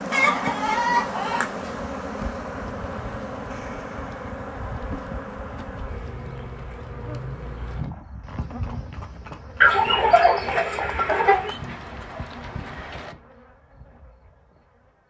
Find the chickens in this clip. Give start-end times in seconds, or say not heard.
0.1-1.7, 9.6-11.6.